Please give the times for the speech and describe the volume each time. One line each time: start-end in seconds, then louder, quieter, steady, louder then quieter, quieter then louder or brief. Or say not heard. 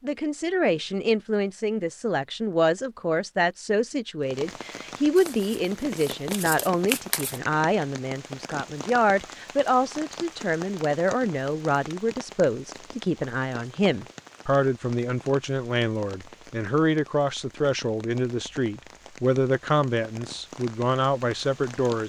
0.0-22.0 steady.